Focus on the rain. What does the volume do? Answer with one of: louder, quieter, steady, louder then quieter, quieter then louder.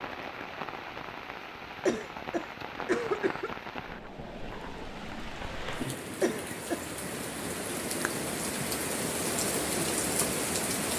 louder.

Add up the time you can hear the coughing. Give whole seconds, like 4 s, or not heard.
2 s.